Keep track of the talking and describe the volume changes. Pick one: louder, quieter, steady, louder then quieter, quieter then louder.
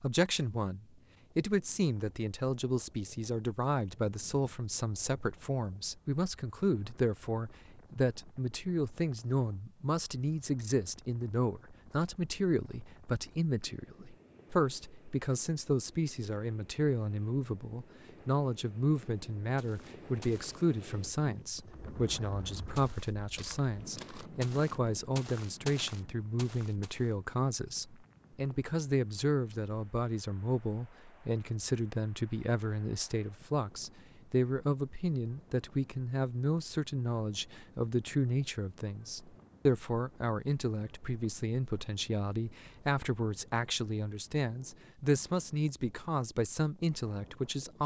steady.